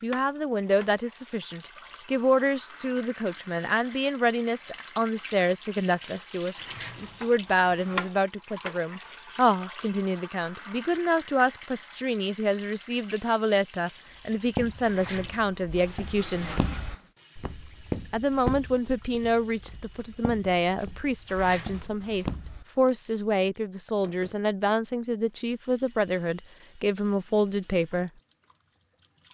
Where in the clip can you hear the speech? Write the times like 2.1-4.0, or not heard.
0.0-16.5, 18.1-28.1.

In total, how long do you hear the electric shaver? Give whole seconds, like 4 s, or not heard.
not heard.